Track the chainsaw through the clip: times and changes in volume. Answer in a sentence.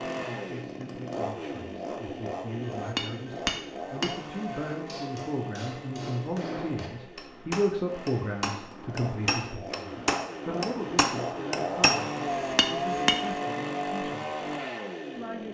You can hear the chainsaw from 0.0 to 15.4 s, getting quieter then louder.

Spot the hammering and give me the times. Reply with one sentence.
The hammering can be heard from 2.6 to 13.3 s.